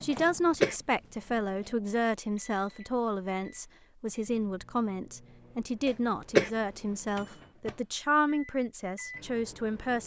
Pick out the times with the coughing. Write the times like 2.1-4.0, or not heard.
0.1-0.8, 5.8-6.5.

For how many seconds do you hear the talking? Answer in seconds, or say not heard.
10 s.